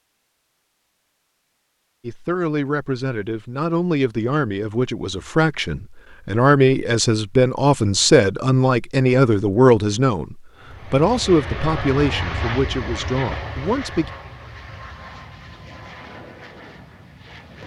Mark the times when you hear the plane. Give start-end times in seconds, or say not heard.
10.6-17.6.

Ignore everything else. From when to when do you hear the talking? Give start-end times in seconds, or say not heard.
2.0-14.1.